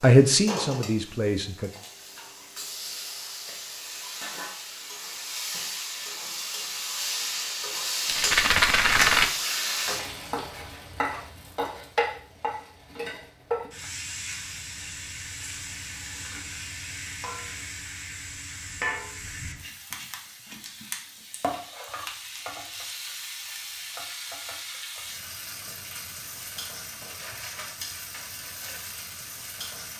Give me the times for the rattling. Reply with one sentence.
The rattling can be heard from 8.1 to 9.3 s.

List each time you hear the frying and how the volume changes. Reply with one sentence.
You can hear the frying from 0.0 to 29.9 s, getting louder then quieter.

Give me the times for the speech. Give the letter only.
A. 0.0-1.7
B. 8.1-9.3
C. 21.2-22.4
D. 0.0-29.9
A.